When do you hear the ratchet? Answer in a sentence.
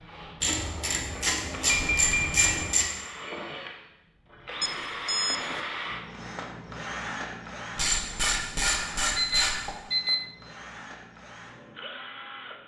You can hear the ratchet from 0.4 to 2.9 s and from 7.8 to 9.8 s.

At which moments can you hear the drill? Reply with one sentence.
You can hear the drill from 0.0 to 12.6 s.